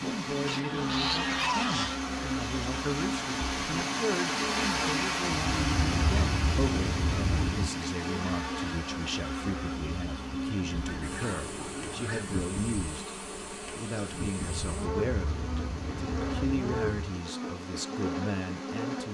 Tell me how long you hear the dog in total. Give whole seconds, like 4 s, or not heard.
not heard.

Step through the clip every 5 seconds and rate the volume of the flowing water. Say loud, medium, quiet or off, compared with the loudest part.
loud, loud, quiet, quiet.